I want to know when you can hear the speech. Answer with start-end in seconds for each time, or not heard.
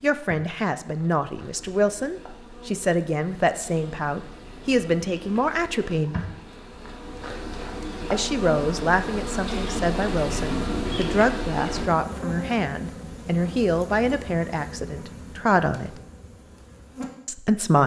0.0-6.2, 8.1-15.9, 17.2-17.8.